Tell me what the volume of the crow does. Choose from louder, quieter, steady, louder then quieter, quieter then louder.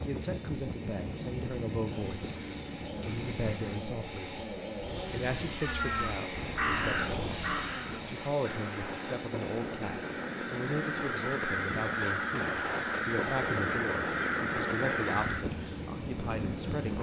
quieter then louder.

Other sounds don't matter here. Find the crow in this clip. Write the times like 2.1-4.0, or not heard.
5.6-15.4.